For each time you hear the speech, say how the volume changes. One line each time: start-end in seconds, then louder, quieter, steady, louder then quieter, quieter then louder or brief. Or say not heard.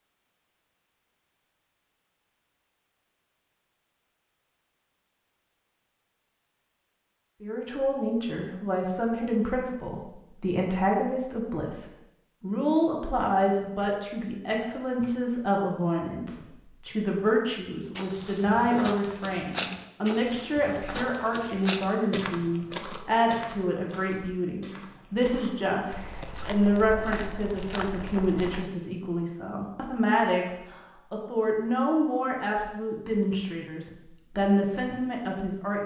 7.4-35.8 steady.